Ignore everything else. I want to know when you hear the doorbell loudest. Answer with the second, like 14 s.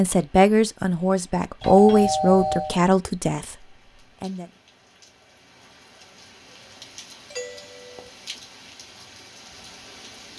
2 s.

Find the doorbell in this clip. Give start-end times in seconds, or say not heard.
1.6-2.8, 7.3-8.1.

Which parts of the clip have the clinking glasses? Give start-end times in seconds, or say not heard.
not heard.